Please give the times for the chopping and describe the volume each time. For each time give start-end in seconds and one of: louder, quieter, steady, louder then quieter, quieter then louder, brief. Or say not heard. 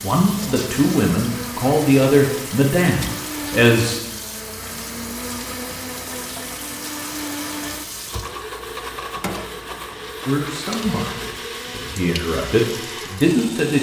not heard.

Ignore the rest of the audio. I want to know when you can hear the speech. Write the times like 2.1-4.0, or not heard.
0.0-4.0, 10.2-13.7.